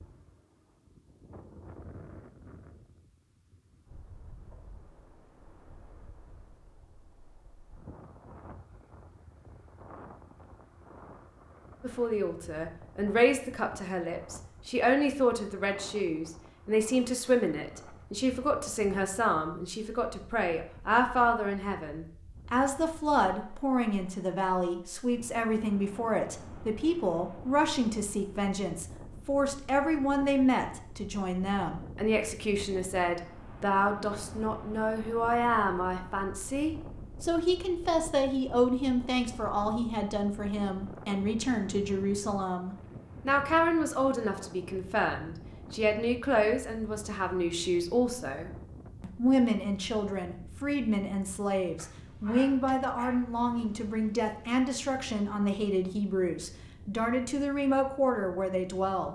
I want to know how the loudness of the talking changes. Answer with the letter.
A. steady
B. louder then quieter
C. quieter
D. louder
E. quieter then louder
A.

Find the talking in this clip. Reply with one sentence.
You can hear the talking from 11.8 to 59.1 s.